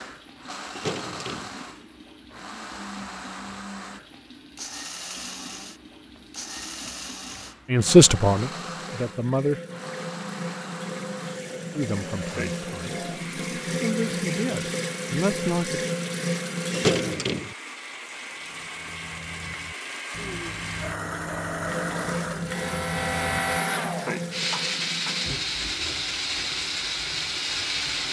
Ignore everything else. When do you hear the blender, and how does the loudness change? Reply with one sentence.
The blender can be heard from 0.0 to 28.0 s, getting louder.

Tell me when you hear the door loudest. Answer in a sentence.
The loudest moment of the door is at 17 seconds.